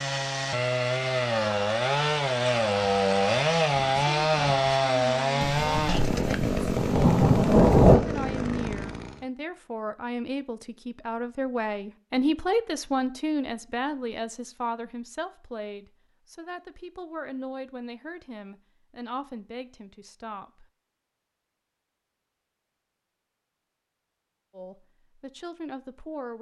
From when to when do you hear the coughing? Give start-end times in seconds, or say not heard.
not heard.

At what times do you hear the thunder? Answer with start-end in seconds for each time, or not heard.
5.4-8.0.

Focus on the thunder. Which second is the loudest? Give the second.
8 s.